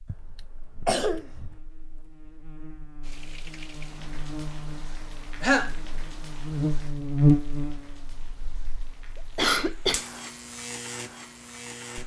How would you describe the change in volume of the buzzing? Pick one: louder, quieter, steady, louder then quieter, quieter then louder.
louder then quieter.